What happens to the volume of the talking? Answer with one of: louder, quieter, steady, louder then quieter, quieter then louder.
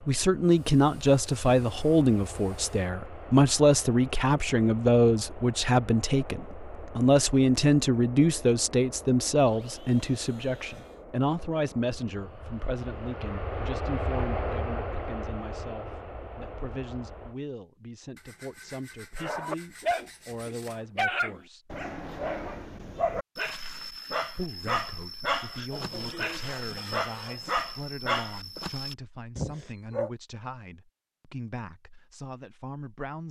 quieter.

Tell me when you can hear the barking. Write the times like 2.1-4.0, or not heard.
19.1-30.1.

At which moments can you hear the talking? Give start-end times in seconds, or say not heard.
0.1-21.8, 24.3-33.2.